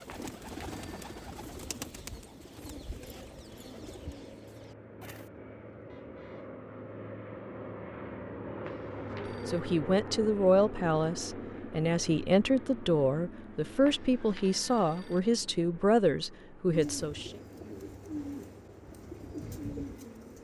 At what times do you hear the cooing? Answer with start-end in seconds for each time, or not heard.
0.0-5.3, 16.7-20.4.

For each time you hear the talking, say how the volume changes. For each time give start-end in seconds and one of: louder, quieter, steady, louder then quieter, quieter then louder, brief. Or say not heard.
9.4-17.4 steady.